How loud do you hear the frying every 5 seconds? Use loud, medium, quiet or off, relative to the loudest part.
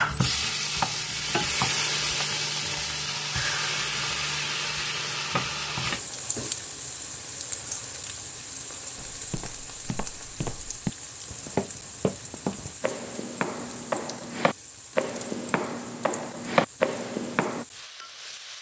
loud, medium, quiet, quiet.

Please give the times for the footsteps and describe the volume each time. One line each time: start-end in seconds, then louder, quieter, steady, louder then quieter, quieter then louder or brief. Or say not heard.
8.9-17.6 louder.